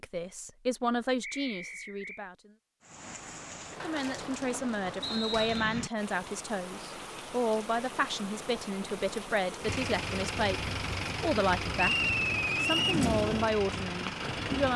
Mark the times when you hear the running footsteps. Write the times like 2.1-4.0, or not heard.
not heard.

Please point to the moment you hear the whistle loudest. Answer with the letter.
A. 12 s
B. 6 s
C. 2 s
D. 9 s
A.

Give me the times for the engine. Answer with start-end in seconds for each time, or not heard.
9.6-14.7.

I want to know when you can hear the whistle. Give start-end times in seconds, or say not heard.
1.2-2.2, 5.0-5.8, 11.8-13.0.